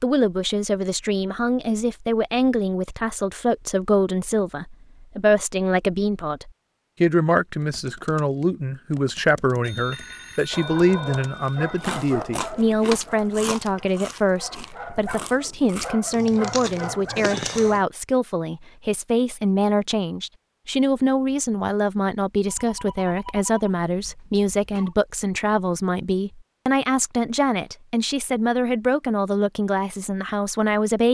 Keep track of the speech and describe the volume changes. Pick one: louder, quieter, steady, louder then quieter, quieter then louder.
steady.